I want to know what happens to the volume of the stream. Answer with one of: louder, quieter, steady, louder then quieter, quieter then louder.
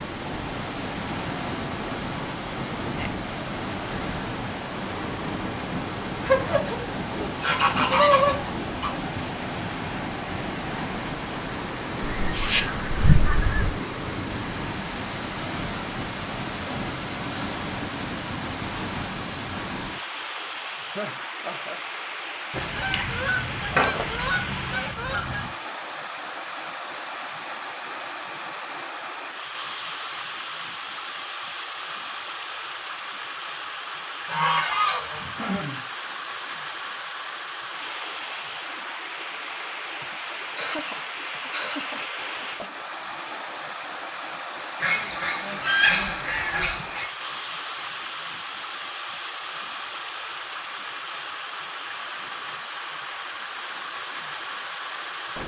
steady.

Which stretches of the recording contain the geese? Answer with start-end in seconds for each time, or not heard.
6.2-8.9, 12.1-13.7, 22.5-25.5, 34.2-35.8, 44.8-47.0.